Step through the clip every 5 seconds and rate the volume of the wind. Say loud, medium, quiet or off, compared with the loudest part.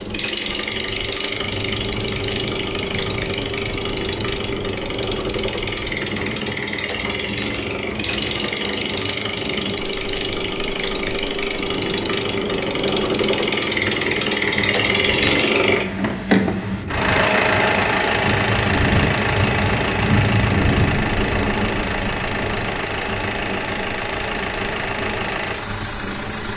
medium, medium, medium, loud, loud, medium.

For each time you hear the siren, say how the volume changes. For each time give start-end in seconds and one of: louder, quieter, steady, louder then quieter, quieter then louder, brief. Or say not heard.
not heard.